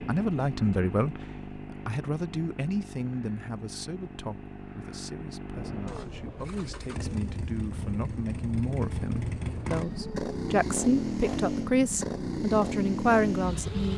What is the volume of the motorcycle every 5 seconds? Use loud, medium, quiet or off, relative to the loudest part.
medium, medium, loud.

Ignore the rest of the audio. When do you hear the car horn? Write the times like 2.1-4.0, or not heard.
not heard.